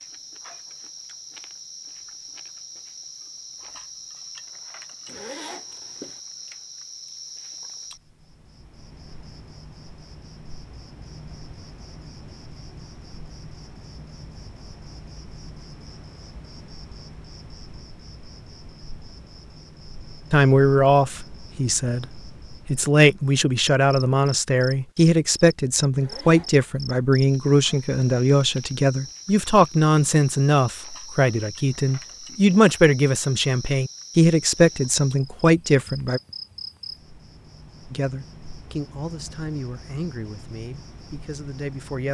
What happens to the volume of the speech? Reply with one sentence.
The loudness of the speech goes down.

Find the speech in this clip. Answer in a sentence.
You can hear the speech from 20.3 to 36.2 s and from 37.9 to 42.1 s.